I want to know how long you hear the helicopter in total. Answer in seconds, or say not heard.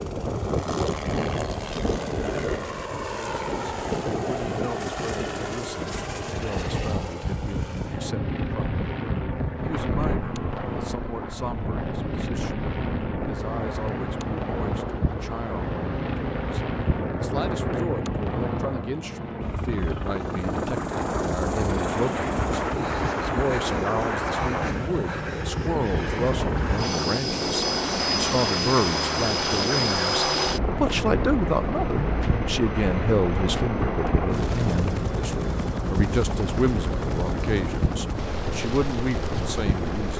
40 s.